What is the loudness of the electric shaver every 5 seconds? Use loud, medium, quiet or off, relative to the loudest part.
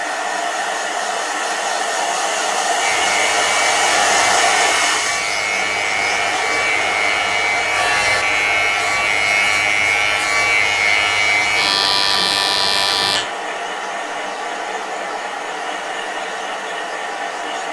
medium, loud, loud, off.